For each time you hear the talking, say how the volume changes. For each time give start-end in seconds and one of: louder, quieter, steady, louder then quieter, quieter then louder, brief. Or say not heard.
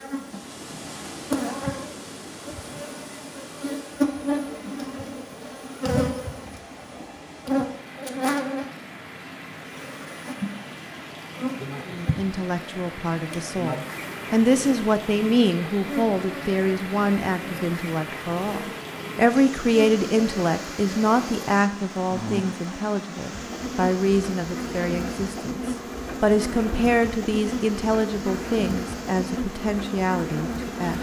11.8-30.9 steady.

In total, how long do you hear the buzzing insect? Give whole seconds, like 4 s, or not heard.
31 s.